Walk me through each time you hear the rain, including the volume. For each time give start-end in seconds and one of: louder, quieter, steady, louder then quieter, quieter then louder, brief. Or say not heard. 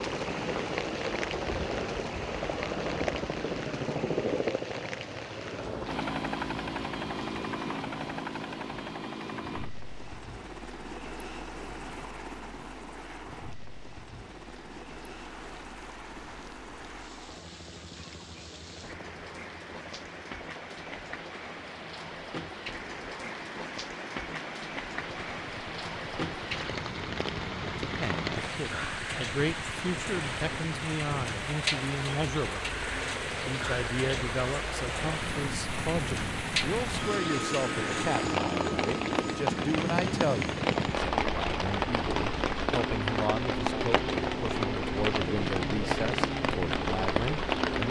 0.0-47.8 quieter then louder.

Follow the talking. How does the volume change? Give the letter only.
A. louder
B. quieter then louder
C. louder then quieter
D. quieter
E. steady
E.